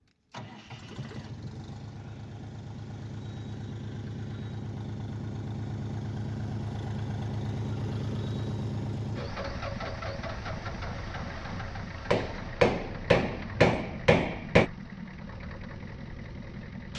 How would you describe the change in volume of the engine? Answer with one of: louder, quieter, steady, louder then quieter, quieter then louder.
louder then quieter.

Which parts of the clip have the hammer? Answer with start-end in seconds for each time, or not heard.
12.1-14.7.